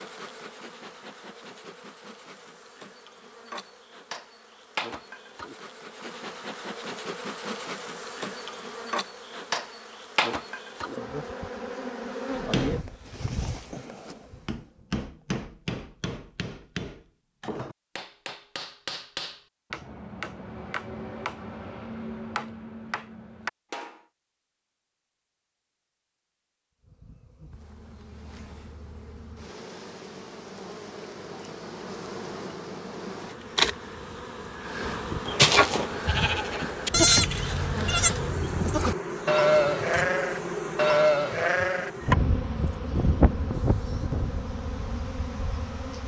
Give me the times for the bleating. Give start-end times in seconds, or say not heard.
35.0-44.5.